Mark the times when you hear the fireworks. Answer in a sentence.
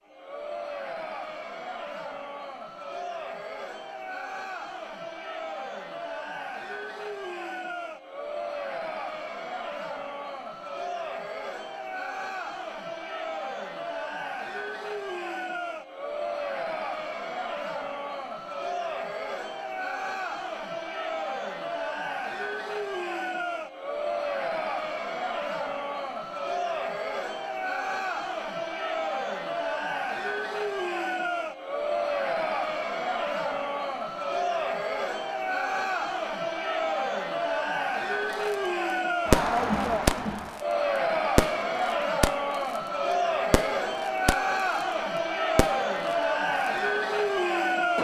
You can hear the fireworks from 39.3 to 40.2 s, from 41.4 to 42.4 s, from 43.5 to 44.4 s and from 45.5 to 46.1 s.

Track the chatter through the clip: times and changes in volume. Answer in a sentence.
The chatter can be heard from 0.0 to 47.9 s, getting louder.